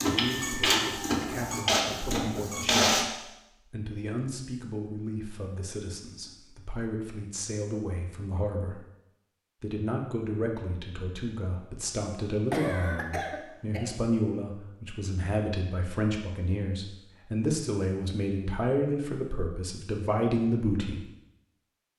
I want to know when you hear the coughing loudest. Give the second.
13 s.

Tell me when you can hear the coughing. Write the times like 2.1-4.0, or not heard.
12.5-13.9.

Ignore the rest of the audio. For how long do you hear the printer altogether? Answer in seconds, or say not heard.
3 s.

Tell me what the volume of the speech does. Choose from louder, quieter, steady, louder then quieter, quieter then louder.
louder.